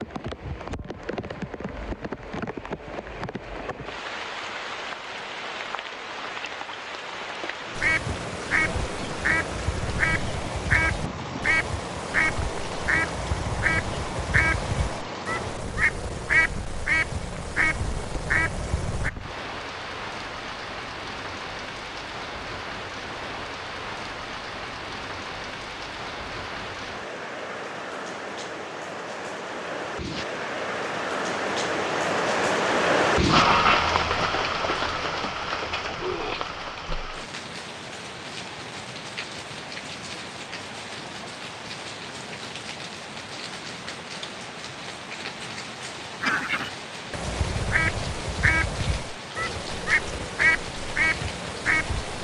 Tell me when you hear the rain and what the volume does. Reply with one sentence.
The rain can be heard from 0.0 to 52.1 s, getting louder then quieter.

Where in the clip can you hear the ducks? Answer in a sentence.
The ducks can be heard from 7.8 to 19.1 s and from 46.2 to 52.1 s.